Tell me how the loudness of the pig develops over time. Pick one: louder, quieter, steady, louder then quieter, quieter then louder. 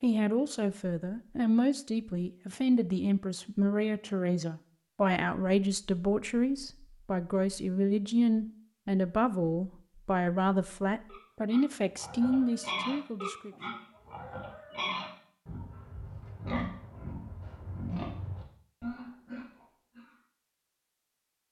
steady.